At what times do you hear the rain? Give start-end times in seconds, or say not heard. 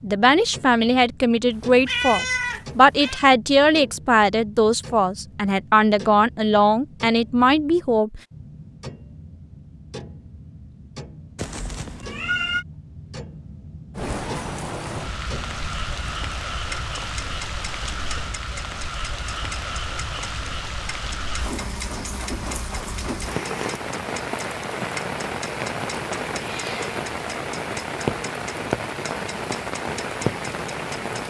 13.9-31.2.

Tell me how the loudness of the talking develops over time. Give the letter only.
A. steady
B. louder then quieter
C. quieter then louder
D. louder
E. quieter
A.